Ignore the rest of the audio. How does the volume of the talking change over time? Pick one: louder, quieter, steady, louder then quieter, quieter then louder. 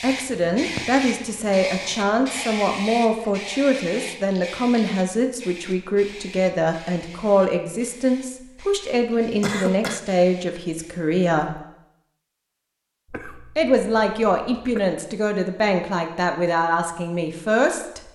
steady.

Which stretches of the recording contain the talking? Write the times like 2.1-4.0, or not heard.
0.0-11.6, 13.6-18.0.